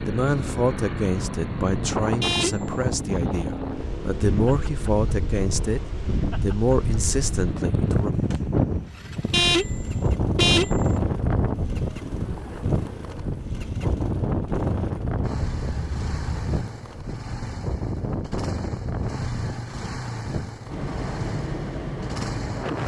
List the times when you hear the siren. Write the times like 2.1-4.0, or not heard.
not heard.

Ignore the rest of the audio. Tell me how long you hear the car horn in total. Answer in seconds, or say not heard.
3 s.